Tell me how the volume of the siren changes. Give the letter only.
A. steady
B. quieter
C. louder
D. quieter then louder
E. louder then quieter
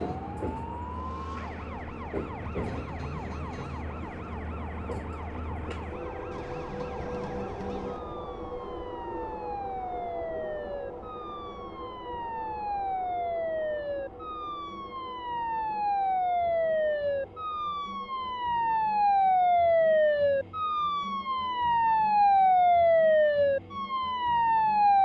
C.